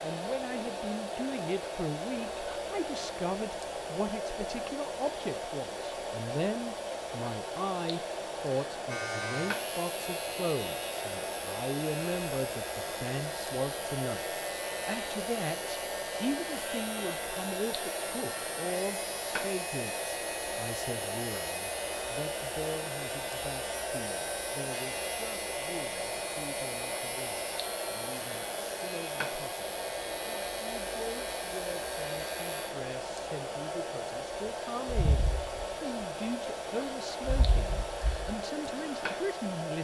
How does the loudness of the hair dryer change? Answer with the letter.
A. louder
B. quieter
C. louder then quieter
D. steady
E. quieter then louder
D.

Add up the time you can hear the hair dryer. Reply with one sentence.
The hair dryer can be heard for 40 seconds in total.